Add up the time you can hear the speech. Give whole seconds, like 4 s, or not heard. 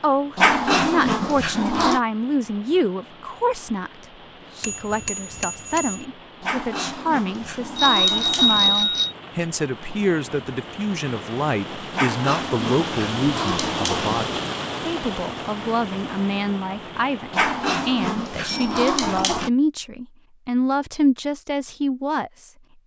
23 s.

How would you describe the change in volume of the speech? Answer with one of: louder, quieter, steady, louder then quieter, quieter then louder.
steady.